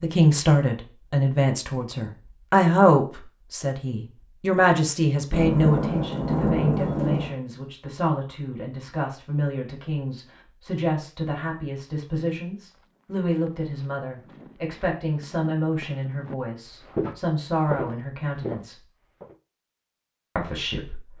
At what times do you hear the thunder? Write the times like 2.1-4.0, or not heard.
5.3-7.3.